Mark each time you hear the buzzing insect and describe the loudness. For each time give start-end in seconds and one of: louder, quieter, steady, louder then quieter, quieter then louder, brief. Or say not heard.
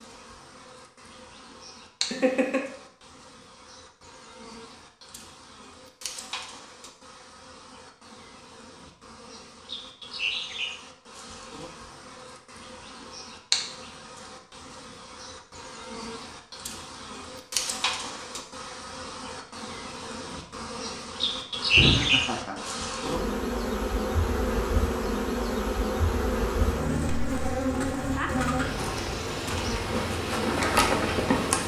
0.0-31.6 louder.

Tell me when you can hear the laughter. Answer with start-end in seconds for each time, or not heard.
2.1-2.6, 21.7-22.6.